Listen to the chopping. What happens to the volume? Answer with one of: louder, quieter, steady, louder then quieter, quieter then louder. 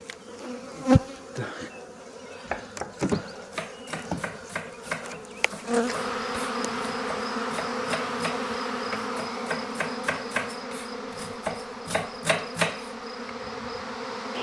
louder.